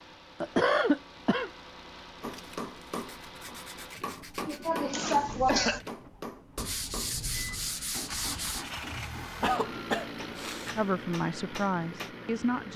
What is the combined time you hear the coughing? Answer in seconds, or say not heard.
4 s.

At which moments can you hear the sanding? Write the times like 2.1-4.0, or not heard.
2.3-4.7, 6.5-8.7.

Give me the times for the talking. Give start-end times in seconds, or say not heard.
10.8-12.7.